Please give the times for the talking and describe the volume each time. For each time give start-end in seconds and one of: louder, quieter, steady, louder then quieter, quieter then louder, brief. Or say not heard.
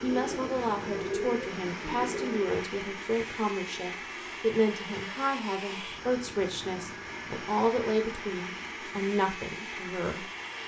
0.0-10.2 steady.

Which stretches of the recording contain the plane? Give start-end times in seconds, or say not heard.
0.0-10.6.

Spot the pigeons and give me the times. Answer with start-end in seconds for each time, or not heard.
0.0-2.6.